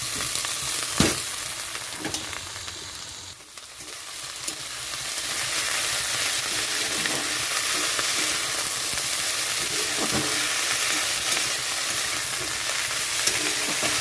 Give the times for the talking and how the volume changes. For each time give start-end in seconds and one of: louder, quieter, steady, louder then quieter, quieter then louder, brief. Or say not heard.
not heard.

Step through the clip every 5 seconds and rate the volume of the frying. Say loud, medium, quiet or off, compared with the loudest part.
medium, loud, loud.